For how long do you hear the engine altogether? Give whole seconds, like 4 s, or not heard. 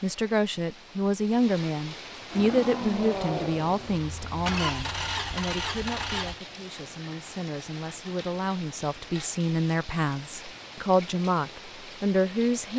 4 s.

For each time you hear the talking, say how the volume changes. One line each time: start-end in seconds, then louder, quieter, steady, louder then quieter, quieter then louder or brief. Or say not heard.
0.0-12.7 quieter then louder.